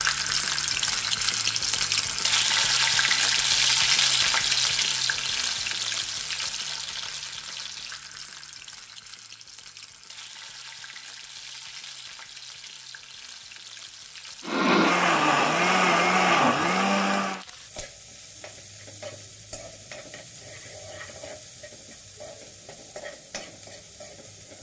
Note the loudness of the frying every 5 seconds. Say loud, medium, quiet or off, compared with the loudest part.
loud, medium, quiet, quiet, quiet.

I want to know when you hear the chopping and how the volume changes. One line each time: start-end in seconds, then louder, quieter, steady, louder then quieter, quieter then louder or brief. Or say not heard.
not heard.